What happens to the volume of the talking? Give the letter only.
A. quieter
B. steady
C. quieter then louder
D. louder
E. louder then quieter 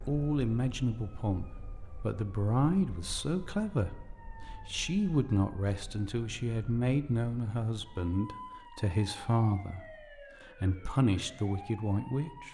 B.